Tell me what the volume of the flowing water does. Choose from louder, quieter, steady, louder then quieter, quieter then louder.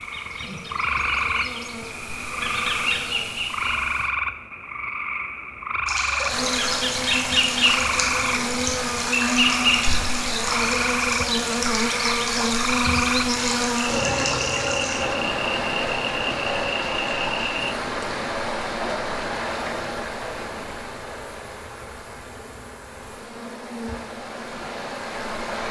quieter.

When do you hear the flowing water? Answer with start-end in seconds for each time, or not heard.
5.8-25.6.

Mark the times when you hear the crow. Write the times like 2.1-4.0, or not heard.
not heard.